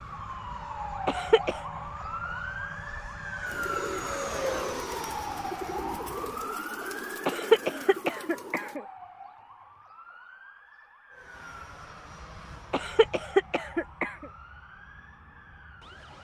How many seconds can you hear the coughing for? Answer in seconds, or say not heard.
4 s.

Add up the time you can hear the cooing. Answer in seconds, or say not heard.
5 s.